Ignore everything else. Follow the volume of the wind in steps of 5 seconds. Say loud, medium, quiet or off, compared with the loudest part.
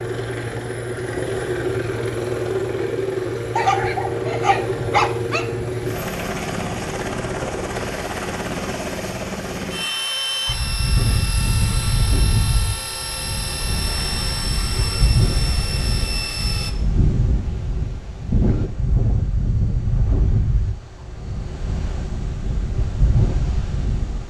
off, off, loud, loud, loud.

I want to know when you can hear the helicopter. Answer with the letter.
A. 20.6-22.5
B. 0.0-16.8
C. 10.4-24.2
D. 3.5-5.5
B.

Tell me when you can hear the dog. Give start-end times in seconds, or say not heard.
3.5-5.5.